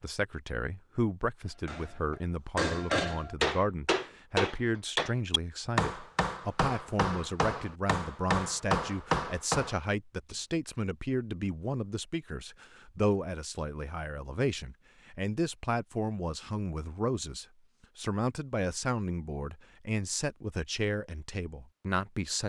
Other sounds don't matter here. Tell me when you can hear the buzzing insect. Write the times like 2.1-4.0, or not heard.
not heard.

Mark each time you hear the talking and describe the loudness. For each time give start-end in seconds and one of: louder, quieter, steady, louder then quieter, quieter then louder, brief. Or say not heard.
0.0-22.4 steady.